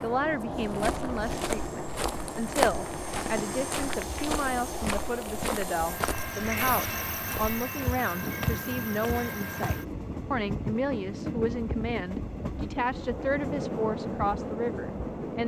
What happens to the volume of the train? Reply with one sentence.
The volume of the train stays about the same.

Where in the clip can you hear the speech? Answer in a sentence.
You can hear the speech from 0.0 to 15.4 s.